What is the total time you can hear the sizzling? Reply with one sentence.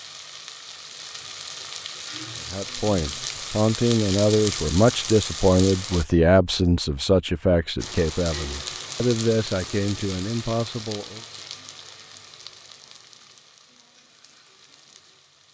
You can hear the sizzling for 14 seconds altogether.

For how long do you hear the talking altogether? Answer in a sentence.
You can hear the talking for 9 seconds altogether.